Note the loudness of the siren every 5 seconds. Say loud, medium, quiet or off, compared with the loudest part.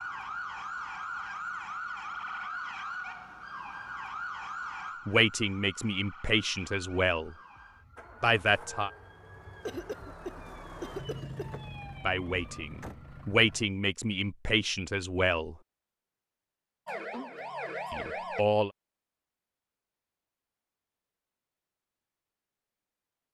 loud, quiet, quiet, loud, off.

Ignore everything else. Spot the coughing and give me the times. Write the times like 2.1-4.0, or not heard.
9.7-11.6.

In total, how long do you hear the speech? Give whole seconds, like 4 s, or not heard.
7 s.